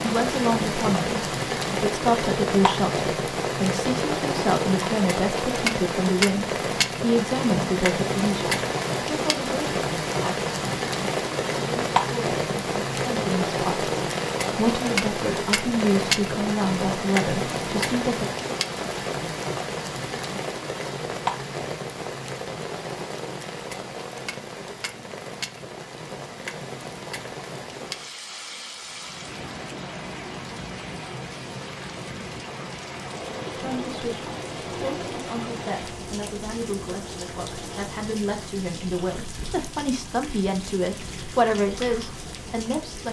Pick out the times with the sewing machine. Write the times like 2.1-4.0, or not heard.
33.0-38.0.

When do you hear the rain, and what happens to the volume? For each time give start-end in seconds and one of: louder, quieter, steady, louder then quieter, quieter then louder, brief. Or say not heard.
0.0-43.0 quieter.